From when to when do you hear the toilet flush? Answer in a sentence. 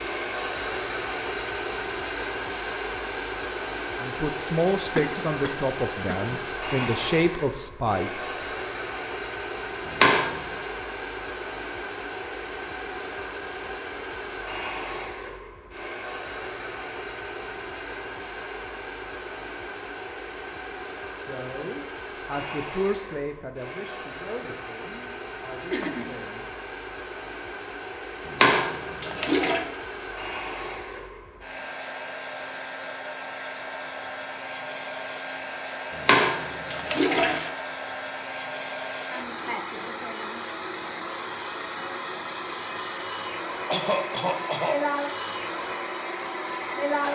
The toilet flush can be heard from 9.8 to 10.4 s, from 28.2 to 29.6 s and from 36.0 to 37.5 s.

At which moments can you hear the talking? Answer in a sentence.
The talking can be heard from 4.0 to 8.6 s and from 21.1 to 26.6 s.